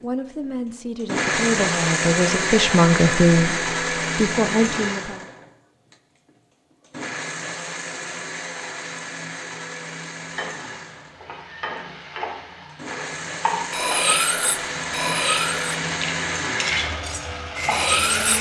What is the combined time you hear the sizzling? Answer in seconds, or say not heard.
8 s.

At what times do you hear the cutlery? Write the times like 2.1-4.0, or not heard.
13.7-18.3.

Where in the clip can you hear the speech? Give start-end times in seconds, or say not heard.
0.0-5.2.